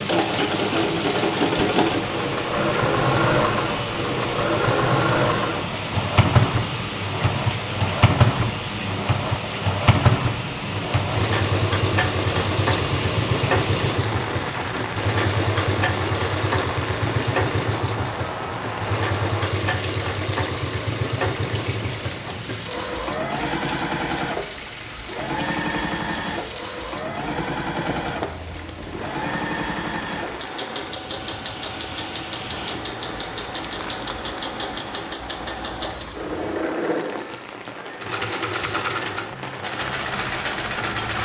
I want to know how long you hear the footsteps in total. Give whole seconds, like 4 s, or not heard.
not heard.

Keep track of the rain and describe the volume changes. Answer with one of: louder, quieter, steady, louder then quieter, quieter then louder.
quieter.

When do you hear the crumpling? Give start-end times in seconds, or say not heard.
33.4-34.2.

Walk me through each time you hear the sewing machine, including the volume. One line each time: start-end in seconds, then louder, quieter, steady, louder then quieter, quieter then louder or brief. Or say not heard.
0.0-41.1 quieter.